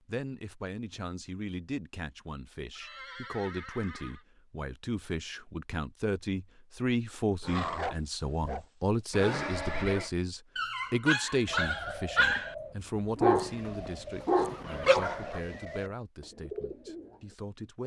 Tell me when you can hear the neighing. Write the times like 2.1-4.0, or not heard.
2.8-4.2, 9.1-10.1, 13.4-15.9.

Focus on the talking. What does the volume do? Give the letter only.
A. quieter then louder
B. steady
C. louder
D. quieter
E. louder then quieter
E.